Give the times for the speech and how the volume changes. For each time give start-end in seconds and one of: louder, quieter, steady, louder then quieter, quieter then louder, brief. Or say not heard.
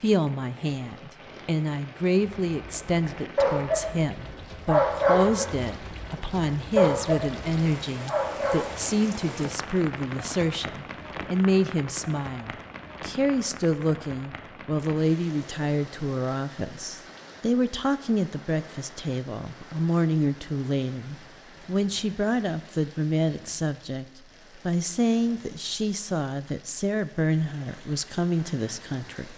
0.0-29.3 steady.